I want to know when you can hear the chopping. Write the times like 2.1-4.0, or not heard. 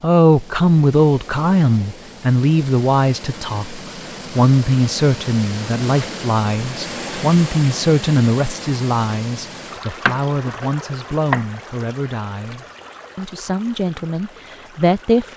10.1-11.6.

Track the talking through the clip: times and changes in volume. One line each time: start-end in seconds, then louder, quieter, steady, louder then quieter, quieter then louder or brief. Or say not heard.
0.0-15.3 quieter.